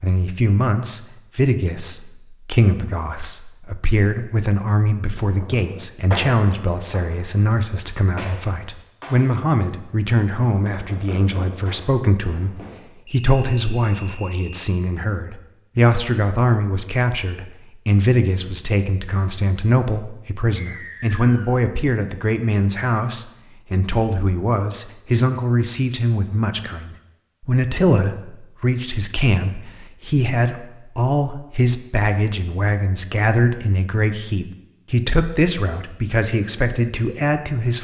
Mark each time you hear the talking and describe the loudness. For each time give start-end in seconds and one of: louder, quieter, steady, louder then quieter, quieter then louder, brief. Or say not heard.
0.0-37.7 steady.